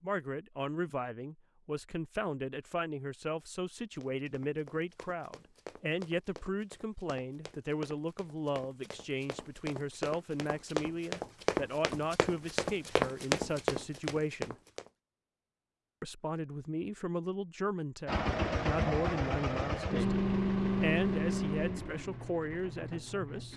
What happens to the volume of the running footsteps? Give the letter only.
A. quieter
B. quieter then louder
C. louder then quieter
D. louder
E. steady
D.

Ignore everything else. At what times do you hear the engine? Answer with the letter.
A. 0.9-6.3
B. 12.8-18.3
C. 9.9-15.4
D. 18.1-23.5
D.